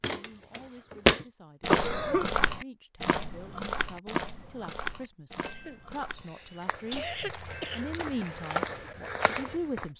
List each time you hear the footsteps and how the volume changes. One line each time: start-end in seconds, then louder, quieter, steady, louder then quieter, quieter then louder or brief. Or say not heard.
0.0-9.8 quieter then louder.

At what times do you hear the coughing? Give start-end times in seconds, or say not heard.
1.6-2.3, 5.4-7.8.